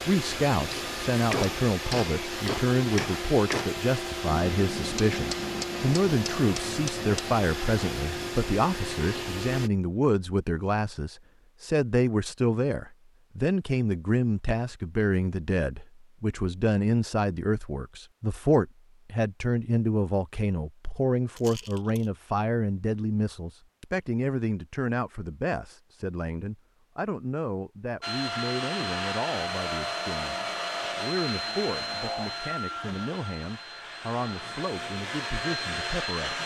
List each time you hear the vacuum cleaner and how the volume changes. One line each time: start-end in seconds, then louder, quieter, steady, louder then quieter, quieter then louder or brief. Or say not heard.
0.0-9.7 steady
28.0-36.4 quieter then louder.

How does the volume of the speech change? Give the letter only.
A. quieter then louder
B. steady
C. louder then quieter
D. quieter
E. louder
D.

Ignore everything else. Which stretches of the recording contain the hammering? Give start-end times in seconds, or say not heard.
0.7-7.3.